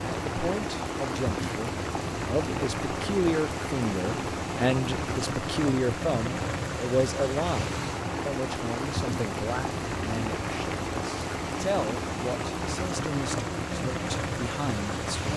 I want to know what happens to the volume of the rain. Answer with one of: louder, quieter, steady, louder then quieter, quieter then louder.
steady.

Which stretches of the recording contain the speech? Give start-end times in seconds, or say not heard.
0.1-15.3.